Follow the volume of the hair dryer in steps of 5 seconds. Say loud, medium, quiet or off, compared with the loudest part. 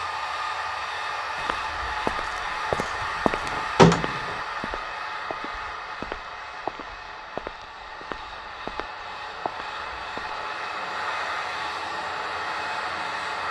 loud, medium, loud.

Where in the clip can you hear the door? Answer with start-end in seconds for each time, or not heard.
2.8-4.3.